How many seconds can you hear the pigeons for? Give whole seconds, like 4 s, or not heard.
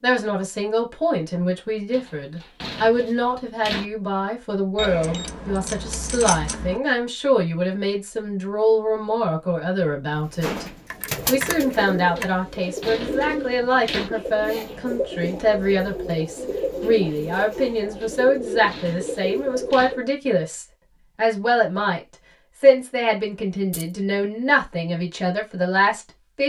10 s.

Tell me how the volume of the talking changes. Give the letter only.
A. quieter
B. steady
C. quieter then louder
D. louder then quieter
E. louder
B.